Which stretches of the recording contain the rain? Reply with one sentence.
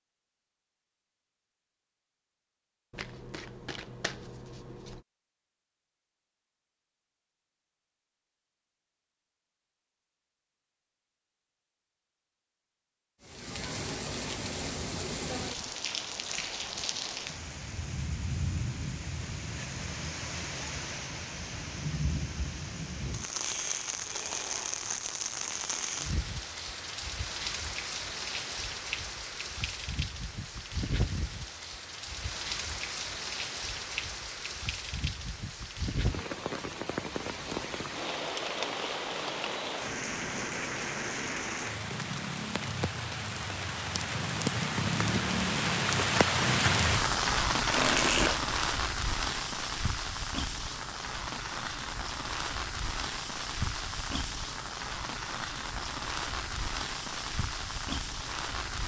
You can hear the rain from 13.2 to 58.8 s.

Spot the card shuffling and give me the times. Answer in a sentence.
The card shuffling can be heard from 2.9 to 5.0 s and from 47.6 to 48.5 s.